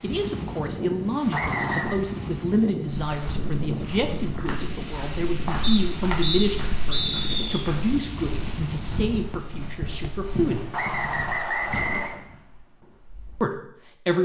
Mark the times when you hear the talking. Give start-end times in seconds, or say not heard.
0.0-10.8, 13.4-14.1.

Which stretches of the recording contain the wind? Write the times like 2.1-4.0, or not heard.
0.0-9.5.